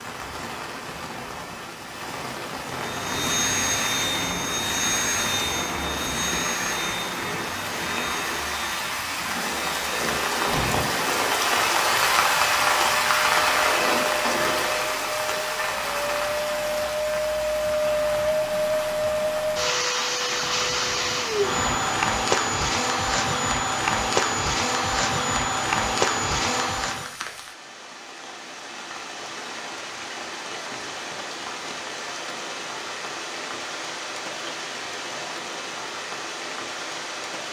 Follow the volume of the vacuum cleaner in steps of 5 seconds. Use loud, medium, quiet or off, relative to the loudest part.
loud, medium, medium, loud, loud, loud, off, off.